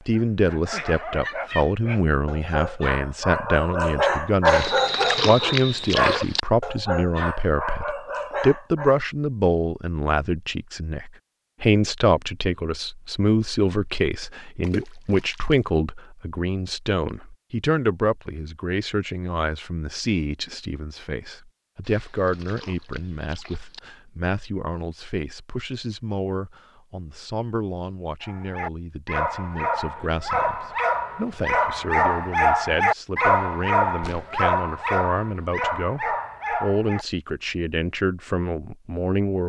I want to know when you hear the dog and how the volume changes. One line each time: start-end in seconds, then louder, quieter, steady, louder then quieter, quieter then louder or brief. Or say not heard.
0.1-9.0 louder then quieter
28.2-37.0 louder then quieter.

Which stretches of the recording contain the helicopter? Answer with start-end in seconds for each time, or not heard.
not heard.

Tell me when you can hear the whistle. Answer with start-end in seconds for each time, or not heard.
4.6-6.0.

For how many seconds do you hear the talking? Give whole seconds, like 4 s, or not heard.
39 s.